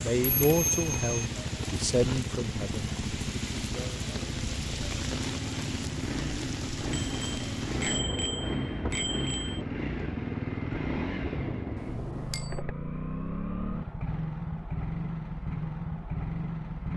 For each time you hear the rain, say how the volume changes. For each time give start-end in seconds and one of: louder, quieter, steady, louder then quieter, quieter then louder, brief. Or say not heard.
0.0-12.3 steady.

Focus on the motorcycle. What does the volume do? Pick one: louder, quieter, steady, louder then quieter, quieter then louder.
steady.